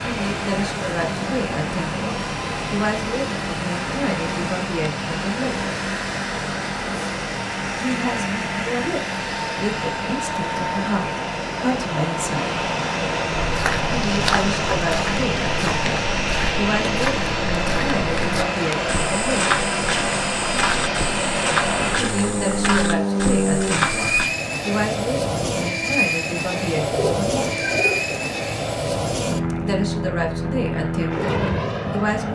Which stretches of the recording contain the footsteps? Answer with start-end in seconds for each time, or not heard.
13.3-24.3.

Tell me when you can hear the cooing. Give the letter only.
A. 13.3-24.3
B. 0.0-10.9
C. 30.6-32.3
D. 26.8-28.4
D.